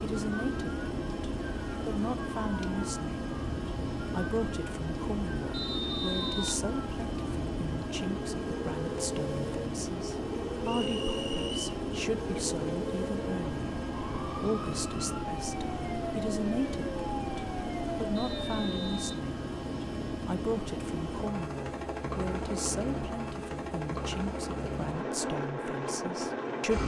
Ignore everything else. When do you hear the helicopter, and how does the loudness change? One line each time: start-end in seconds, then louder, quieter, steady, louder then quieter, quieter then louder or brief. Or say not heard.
0.0-26.8 steady.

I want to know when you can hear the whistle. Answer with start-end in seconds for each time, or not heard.
5.5-6.5, 10.6-11.6, 18.1-19.1.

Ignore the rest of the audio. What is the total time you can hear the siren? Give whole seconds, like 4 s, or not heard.
19 s.